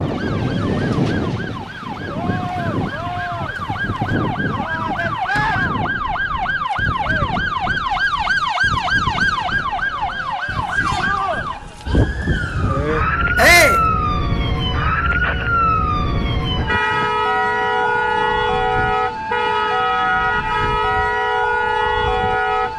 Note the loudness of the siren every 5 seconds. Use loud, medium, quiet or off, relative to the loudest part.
medium, loud, loud, loud, loud.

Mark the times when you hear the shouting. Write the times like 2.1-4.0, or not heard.
13.3-13.8.